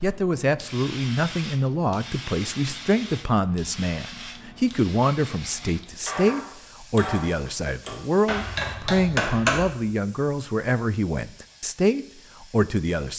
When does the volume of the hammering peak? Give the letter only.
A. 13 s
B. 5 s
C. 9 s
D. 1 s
C.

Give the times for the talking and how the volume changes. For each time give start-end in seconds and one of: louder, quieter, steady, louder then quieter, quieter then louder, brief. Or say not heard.
0.0-13.1 steady.